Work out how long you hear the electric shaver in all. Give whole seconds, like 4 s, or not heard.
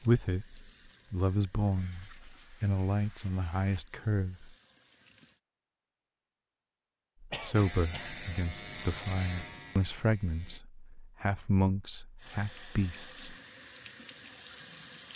3 s.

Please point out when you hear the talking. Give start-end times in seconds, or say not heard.
0.0-4.5, 7.2-13.3.